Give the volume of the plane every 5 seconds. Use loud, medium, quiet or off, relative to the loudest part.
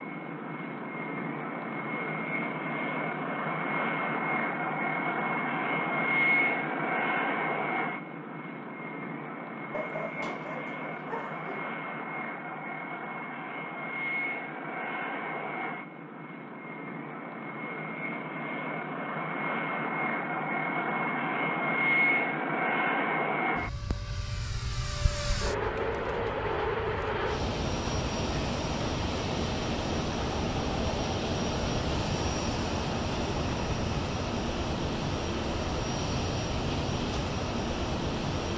loud, loud, medium, medium, loud, loud, loud, loud.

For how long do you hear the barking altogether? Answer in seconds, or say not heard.
2 s.